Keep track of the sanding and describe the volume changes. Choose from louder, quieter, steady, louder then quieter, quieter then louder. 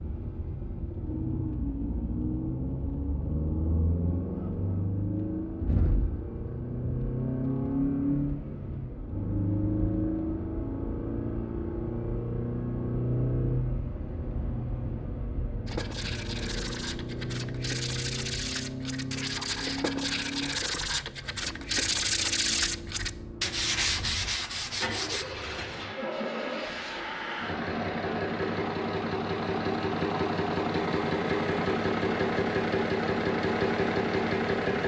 louder.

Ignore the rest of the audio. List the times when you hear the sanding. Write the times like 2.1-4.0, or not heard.
15.7-25.2.